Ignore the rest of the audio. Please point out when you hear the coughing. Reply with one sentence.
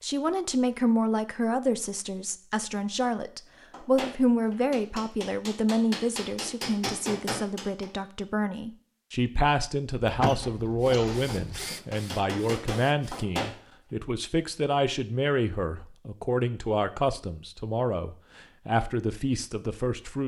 You can hear the coughing from 10.0 to 11.7 s.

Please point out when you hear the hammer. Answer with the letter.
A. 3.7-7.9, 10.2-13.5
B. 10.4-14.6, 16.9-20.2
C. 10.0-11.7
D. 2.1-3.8
A.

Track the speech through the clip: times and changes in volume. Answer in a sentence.
You can hear the speech from 0.0 to 20.2 s, at a steady volume.